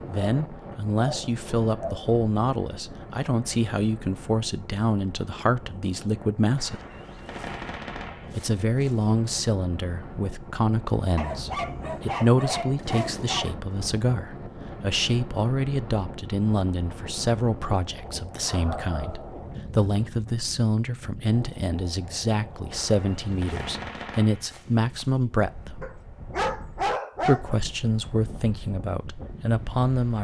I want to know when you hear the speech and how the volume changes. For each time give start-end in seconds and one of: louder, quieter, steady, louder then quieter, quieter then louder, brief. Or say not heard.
0.1-6.8 steady
8.3-25.9 steady
27.2-30.1 brief.